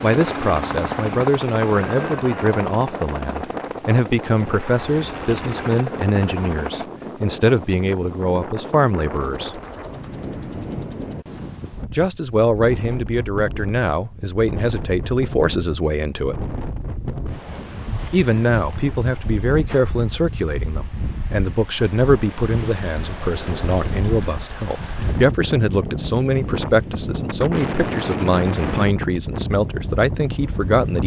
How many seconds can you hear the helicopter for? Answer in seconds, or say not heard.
7 s.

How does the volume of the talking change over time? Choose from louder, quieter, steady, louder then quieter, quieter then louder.
steady.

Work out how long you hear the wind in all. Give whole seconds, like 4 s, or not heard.
31 s.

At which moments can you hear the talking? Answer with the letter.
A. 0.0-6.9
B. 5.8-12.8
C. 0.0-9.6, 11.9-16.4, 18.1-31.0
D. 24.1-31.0
C.